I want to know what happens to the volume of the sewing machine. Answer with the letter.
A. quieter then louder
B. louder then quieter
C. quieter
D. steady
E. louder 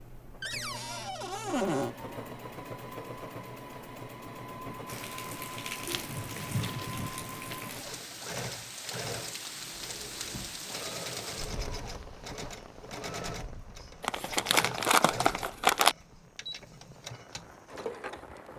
D.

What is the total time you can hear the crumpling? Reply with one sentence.
The crumpling can be heard for 4 seconds in total.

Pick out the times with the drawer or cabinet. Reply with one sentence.
The drawer or cabinet can be heard from 0.4 to 1.9 s and from 9.8 to 10.7 s.